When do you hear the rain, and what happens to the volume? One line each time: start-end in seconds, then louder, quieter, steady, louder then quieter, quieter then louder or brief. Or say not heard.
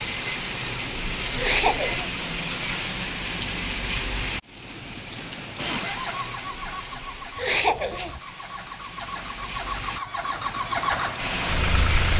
0.0-12.1 quieter then louder.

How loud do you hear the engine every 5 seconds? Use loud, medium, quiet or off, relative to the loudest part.
off, medium, loud.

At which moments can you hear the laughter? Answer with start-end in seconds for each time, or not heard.
1.4-2.1, 7.3-8.2.